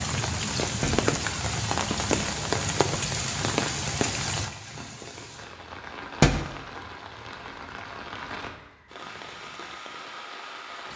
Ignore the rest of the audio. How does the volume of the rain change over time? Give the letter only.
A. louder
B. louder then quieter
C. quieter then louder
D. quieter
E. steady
D.